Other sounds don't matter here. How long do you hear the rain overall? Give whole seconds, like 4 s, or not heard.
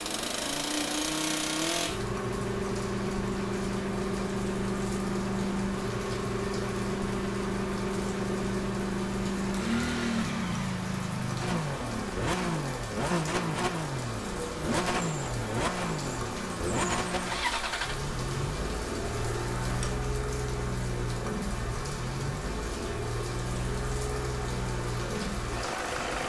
26 s.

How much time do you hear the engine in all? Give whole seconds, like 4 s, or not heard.
26 s.